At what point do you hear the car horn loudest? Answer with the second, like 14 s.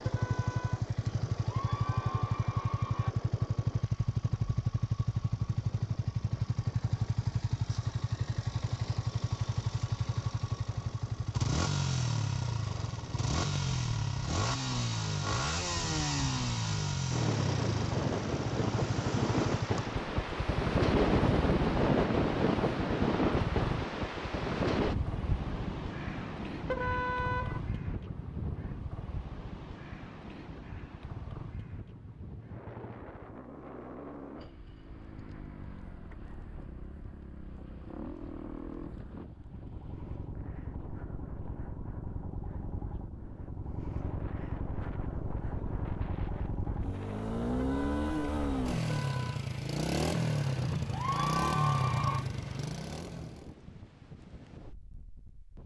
27 s.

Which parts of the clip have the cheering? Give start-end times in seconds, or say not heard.
1.1-3.1, 50.6-52.2.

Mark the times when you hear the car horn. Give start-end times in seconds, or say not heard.
0.0-0.9, 26.6-27.6, 47.5-49.4.